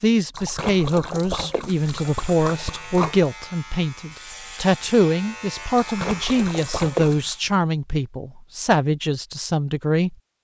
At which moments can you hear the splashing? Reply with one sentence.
The splashing can be heard from 0.3 to 3.3 s and from 5.8 to 7.4 s.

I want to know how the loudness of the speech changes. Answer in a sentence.
The volume of the speech stays about the same.